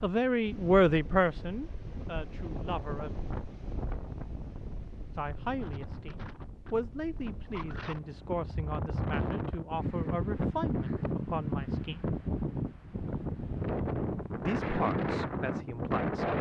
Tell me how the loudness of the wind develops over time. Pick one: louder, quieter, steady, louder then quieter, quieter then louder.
louder.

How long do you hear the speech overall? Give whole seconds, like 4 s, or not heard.
12 s.